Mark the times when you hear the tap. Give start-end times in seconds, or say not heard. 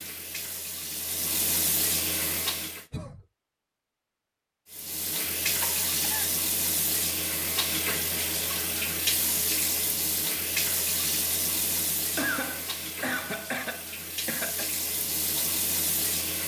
0.0-2.9, 4.7-16.4.